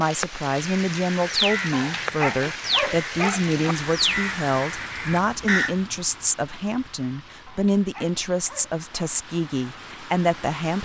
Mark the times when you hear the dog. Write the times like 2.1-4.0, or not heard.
1.7-3.8, 7.5-9.1.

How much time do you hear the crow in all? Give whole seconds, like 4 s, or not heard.
5 s.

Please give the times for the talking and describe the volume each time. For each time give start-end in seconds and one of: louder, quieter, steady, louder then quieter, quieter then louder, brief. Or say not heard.
0.0-10.8 steady.